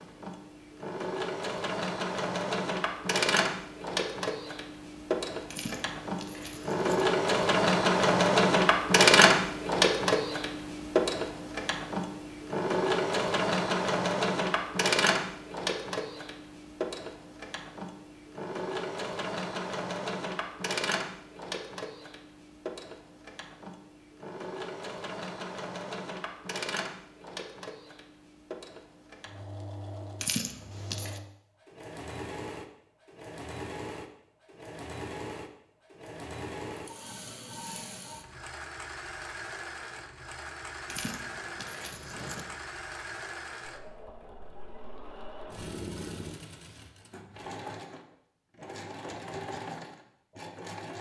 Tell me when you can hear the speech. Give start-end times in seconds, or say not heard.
not heard.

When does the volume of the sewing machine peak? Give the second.
9 s.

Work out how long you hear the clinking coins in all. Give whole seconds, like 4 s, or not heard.
4 s.